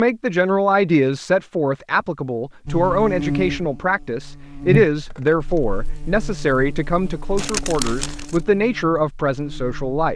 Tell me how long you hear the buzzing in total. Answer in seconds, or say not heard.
7 s.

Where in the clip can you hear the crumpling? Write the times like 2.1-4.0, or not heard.
7.3-8.4.